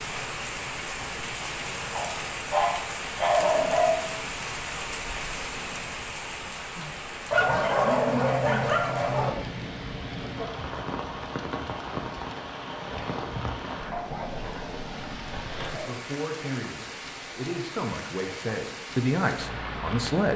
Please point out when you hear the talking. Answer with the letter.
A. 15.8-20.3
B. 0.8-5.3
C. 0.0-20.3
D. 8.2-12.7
A.